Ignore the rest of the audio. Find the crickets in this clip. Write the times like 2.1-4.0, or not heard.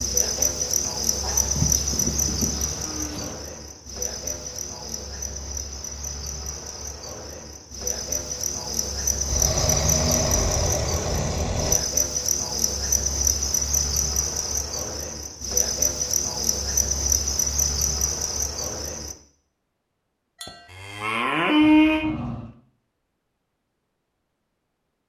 0.0-19.1.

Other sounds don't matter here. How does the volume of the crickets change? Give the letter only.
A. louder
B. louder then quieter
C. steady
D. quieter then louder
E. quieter
D.